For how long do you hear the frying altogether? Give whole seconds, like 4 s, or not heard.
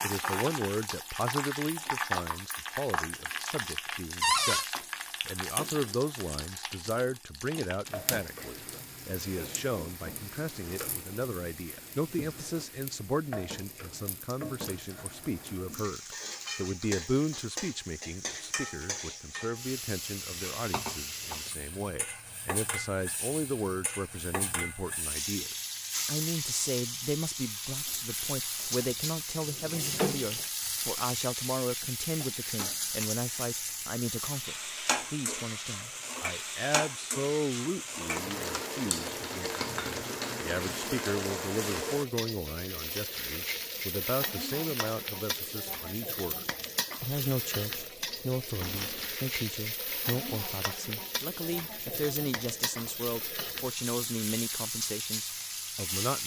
56 s.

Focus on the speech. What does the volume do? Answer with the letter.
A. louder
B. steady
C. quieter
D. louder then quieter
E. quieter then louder
B.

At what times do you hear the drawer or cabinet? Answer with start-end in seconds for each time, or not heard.
4.2-4.7, 28.6-30.4, 48.6-49.1.